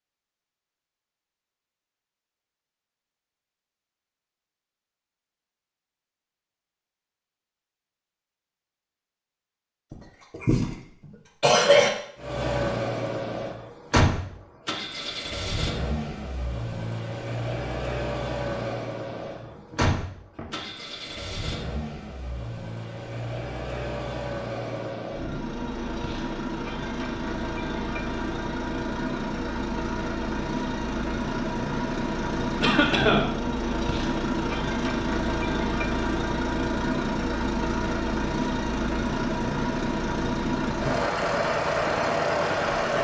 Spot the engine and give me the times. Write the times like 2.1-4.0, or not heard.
12.2-42.9.